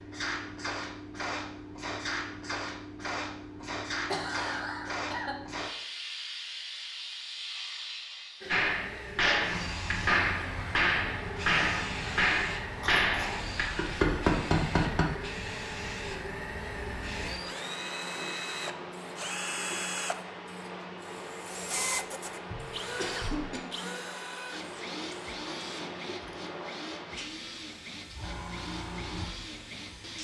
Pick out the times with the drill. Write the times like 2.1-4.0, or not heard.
8.4-30.1.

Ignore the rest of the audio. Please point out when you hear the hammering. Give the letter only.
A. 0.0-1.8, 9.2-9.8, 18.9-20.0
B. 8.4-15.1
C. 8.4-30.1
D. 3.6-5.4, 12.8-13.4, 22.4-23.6
B.